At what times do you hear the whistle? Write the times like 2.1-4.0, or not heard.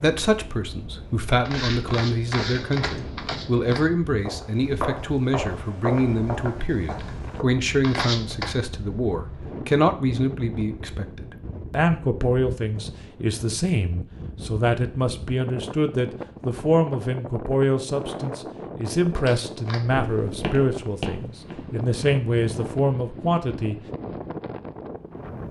not heard.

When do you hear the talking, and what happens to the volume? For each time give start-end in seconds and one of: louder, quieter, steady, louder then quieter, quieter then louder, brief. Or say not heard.
0.0-23.8 steady.